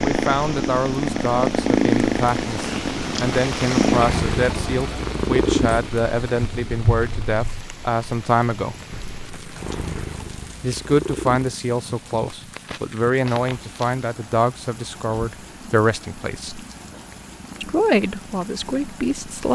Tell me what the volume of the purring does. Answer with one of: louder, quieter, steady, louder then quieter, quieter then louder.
quieter.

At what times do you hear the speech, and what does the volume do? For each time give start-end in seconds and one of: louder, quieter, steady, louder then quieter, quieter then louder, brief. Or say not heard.
0.0-8.8 steady
10.6-16.6 steady
17.6-19.5 brief.